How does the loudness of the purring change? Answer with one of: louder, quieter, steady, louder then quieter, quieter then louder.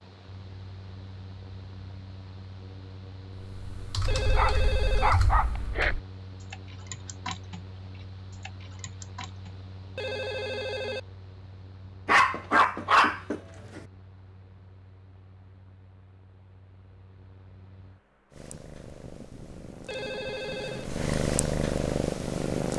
louder.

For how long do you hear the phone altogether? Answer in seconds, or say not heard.
3 s.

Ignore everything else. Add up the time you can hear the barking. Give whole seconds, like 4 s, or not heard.
3 s.